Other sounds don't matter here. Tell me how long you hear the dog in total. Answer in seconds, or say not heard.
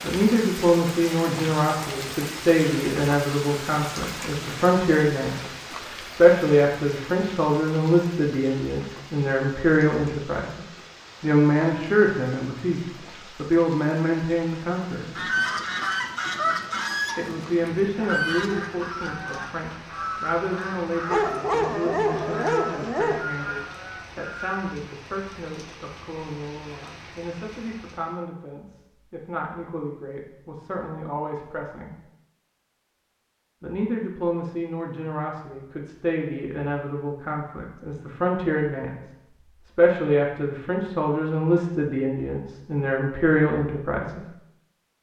2 s.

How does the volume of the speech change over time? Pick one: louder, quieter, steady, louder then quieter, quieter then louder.
quieter then louder.